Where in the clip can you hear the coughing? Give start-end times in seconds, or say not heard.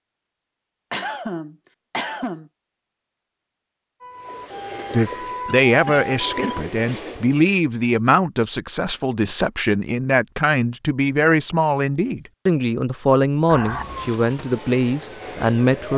0.9-2.5, 5.5-6.5, 13.4-14.1.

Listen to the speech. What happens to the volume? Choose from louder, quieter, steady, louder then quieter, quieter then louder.
steady.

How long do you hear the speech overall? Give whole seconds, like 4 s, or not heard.
11 s.